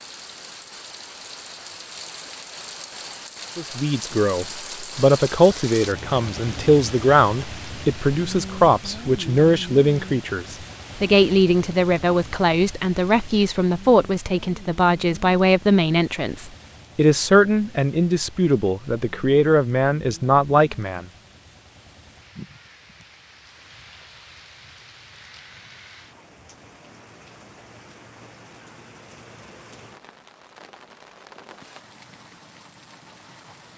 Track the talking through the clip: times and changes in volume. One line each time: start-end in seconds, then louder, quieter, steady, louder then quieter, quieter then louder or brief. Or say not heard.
3.5-21.1 steady.